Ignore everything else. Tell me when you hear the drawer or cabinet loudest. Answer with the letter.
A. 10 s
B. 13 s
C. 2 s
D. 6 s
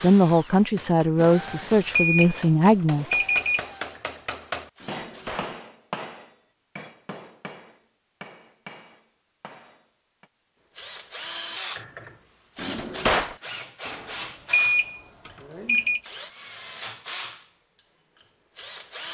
B.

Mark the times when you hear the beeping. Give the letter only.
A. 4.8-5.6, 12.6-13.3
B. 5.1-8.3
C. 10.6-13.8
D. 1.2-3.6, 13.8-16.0
D.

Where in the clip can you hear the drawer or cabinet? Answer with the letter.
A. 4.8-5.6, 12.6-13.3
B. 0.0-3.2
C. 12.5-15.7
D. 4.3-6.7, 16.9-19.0
A.